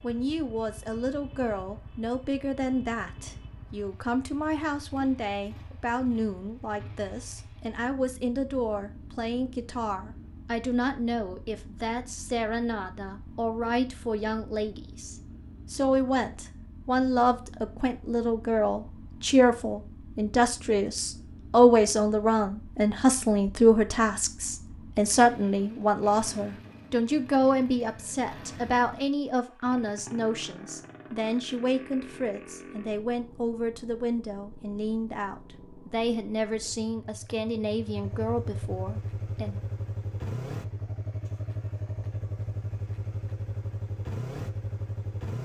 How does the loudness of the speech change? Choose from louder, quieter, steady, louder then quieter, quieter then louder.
louder then quieter.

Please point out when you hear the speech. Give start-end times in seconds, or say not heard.
0.0-39.6.